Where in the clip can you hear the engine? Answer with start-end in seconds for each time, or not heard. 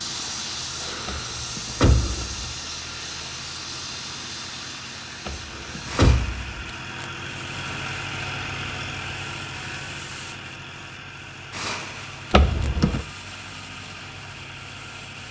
0.0-15.2.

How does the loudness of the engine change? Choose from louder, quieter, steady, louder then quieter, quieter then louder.
louder then quieter.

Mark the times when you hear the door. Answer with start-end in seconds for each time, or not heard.
1.1-2.4, 5.2-6.7, 12.3-13.0.